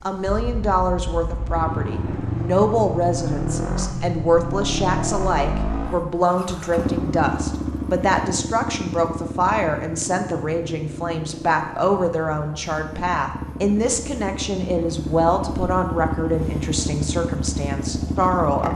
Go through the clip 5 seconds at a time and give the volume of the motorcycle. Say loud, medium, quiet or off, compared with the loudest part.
loud, loud, medium, loud.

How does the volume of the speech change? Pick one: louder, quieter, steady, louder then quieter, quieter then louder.
steady.